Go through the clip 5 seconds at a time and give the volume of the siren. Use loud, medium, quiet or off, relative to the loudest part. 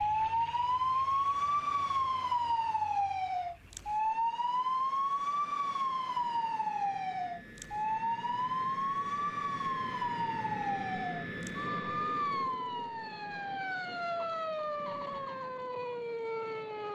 loud, loud, medium, medium.